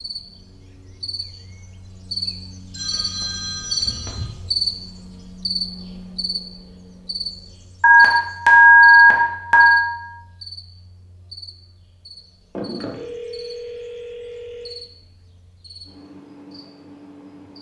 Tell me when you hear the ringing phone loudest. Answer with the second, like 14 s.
9 s.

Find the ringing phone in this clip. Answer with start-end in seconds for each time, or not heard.
2.7-4.2, 7.8-9.8, 12.6-14.8.